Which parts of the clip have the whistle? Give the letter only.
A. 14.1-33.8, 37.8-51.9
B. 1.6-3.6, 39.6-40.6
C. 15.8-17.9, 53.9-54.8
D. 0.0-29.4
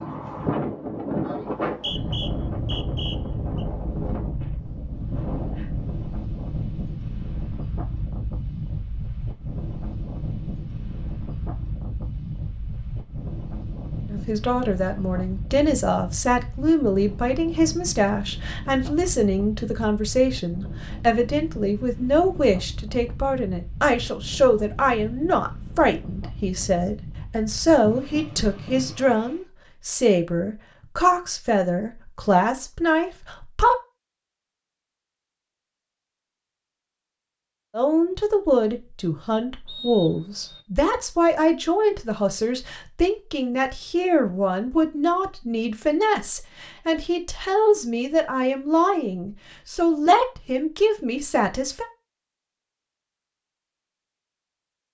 B.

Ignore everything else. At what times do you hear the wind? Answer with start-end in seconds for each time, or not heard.
0.0-29.4.